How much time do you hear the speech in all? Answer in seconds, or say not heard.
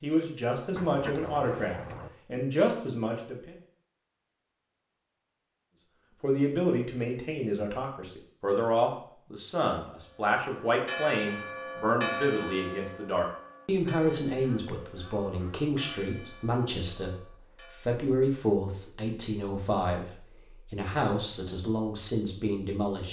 20 s.